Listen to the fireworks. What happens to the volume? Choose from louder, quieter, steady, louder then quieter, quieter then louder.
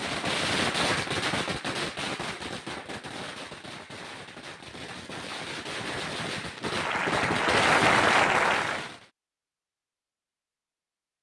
quieter then louder.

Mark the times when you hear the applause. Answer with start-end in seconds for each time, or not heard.
6.7-8.9.